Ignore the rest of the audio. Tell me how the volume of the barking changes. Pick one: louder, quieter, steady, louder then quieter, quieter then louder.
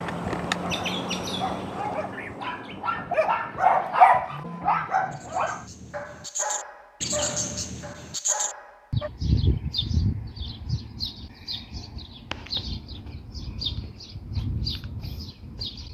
louder then quieter.